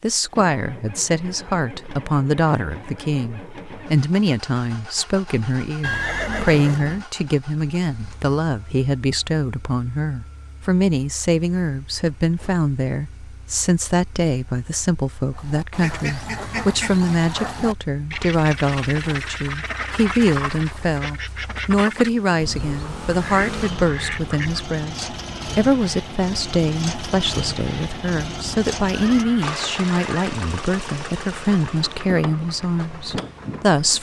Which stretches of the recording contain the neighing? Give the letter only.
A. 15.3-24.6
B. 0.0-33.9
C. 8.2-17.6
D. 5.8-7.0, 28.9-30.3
D.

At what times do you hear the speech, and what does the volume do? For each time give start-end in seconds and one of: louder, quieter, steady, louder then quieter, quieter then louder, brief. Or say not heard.
0.0-33.9 steady.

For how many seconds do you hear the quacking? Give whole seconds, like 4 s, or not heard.
9 s.